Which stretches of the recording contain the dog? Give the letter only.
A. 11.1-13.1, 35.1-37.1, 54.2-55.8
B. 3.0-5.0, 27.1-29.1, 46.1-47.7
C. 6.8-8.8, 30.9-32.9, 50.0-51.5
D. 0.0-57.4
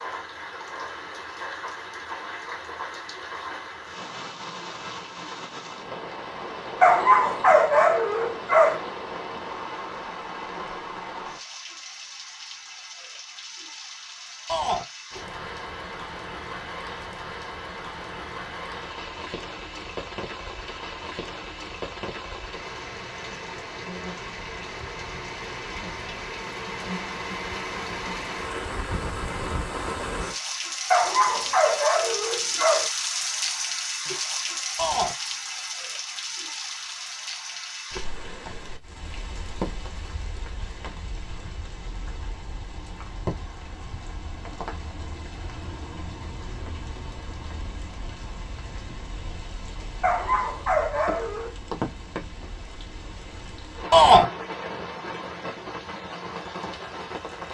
C.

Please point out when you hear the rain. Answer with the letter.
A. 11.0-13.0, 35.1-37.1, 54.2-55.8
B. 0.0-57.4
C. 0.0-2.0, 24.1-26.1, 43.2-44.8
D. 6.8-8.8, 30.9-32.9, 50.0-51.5
B.